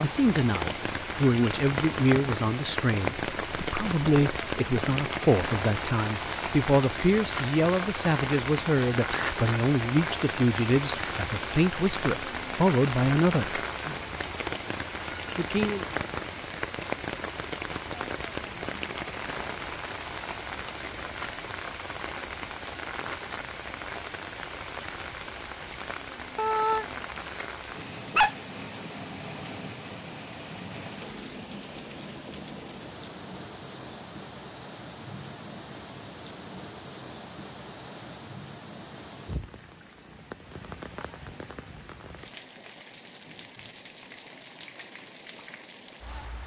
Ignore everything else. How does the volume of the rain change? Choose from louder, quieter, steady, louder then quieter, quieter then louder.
quieter.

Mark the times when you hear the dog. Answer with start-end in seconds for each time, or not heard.
26.4-28.4.